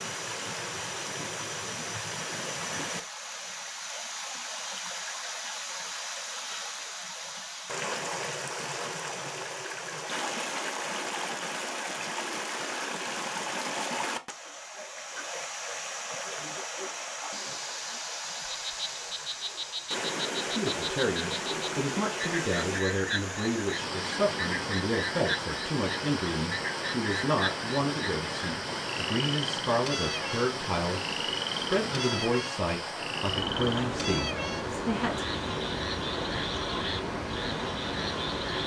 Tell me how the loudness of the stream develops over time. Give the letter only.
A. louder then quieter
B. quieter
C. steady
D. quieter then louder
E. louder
C.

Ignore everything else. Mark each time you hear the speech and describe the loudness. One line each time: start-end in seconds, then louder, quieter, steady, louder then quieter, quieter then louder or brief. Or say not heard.
20.5-35.2 steady.